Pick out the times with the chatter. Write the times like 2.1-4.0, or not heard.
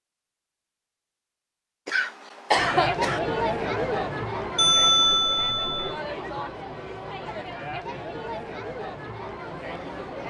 2.5-10.2.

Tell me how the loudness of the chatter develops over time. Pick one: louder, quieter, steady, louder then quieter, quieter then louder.
quieter.